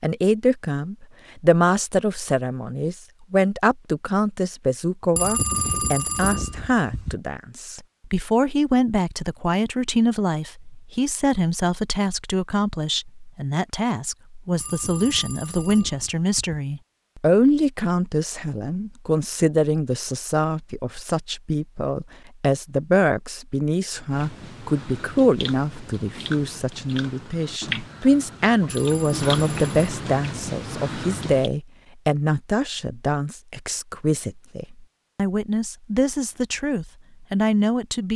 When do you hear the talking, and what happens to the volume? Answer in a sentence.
You can hear the talking from 0.0 to 38.1 s, at a steady volume.